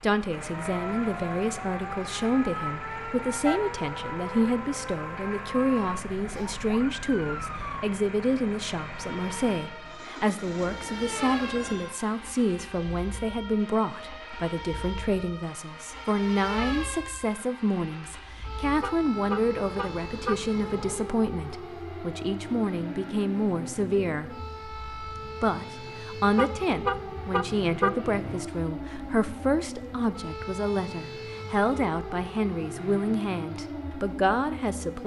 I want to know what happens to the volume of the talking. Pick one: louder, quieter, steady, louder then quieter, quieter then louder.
steady.